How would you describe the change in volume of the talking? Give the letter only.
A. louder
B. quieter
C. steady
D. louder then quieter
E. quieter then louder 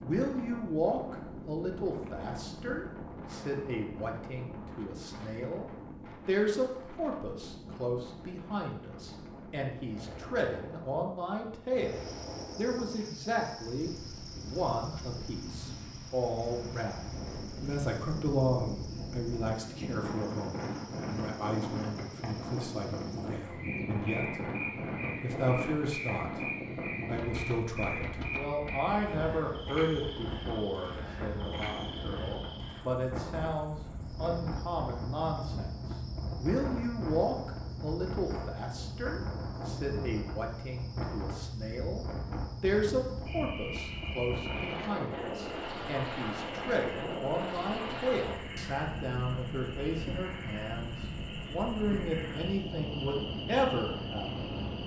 C.